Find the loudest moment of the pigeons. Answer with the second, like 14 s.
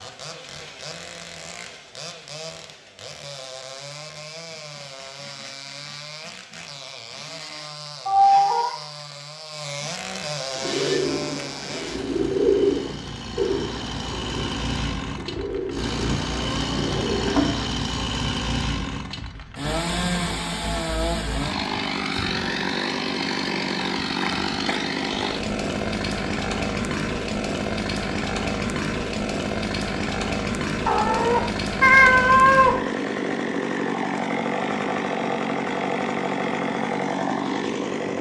13 s.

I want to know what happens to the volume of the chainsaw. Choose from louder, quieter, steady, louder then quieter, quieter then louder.
louder.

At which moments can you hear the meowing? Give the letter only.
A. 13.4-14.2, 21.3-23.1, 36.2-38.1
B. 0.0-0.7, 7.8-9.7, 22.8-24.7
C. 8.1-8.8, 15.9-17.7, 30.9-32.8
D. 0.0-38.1
C.